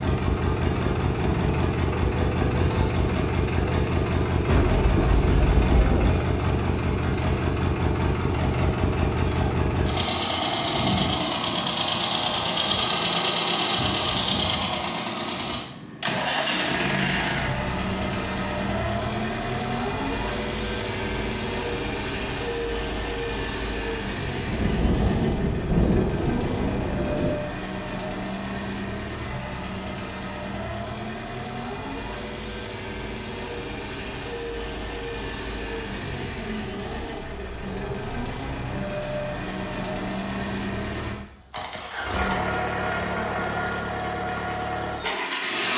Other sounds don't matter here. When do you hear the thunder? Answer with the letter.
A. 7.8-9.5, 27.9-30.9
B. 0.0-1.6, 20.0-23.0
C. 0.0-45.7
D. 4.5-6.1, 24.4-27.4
D.